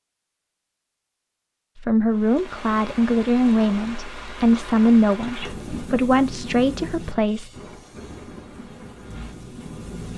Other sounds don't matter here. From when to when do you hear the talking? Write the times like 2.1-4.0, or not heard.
1.8-7.5.